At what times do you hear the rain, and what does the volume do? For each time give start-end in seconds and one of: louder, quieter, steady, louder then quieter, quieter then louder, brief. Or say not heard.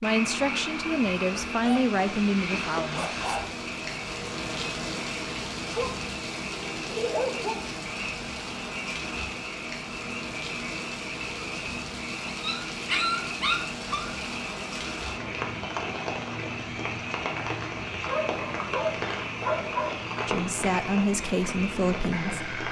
0.0-22.6 steady.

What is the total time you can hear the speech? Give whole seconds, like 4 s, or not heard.
5 s.